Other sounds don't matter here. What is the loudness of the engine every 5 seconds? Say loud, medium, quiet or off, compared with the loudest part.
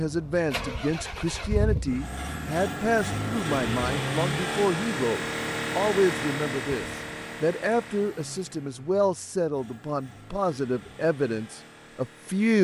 loud, loud, quiet.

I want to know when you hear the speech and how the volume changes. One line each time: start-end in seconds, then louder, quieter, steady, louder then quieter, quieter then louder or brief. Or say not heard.
0.0-12.5 steady.